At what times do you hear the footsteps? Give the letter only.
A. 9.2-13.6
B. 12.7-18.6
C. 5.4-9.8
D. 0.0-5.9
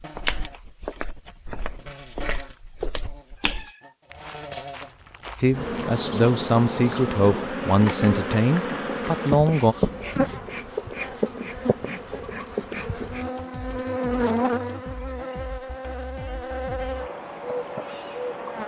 D.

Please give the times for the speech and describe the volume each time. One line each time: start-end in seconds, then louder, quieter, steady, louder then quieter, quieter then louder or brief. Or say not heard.
5.4-9.8 steady.